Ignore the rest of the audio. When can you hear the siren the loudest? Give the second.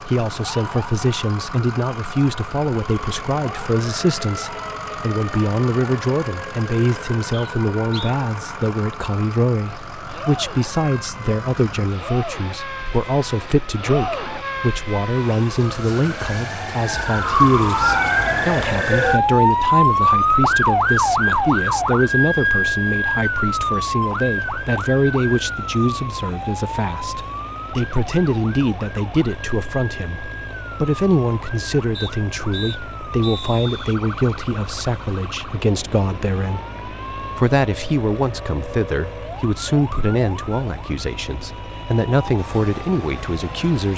20 s.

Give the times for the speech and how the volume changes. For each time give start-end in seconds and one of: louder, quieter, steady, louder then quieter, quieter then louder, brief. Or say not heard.
0.1-43.9 steady.